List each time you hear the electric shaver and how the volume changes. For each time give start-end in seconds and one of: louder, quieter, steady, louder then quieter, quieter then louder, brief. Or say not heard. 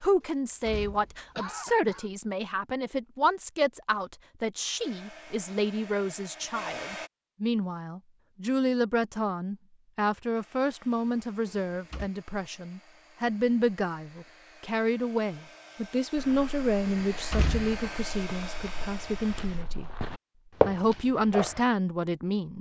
not heard.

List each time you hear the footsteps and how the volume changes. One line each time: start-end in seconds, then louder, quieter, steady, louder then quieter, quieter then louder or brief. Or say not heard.
16.1-21.6 louder.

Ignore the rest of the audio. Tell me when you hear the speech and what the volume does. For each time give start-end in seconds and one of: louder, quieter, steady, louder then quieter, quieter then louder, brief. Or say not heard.
0.0-19.9 steady
20.6-22.5 brief.